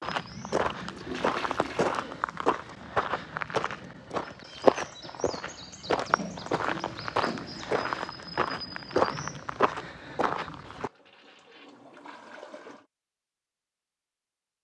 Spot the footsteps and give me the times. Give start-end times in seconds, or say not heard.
0.0-10.9.